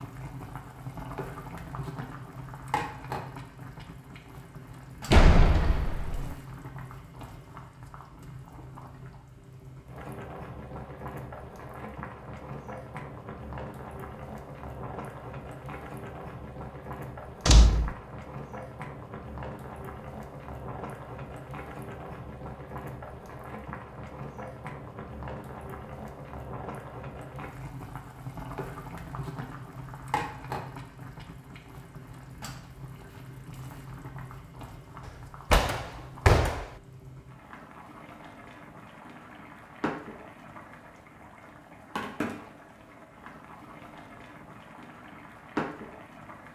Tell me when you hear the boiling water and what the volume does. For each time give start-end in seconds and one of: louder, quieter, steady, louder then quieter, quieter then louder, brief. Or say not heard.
0.0-46.5 steady.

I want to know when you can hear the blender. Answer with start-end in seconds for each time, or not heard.
not heard.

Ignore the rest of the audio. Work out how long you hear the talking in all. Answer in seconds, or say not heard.
not heard.